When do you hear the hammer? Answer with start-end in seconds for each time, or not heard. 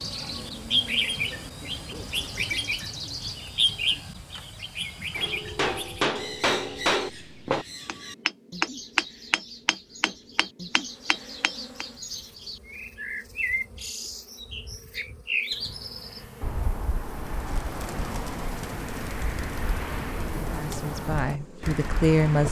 5.2-11.8.